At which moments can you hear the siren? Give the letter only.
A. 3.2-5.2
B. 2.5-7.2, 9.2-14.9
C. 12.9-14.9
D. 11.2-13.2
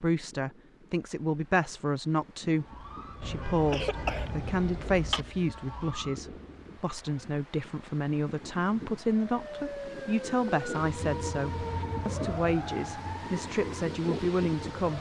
B.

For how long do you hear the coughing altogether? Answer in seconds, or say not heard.
2 s.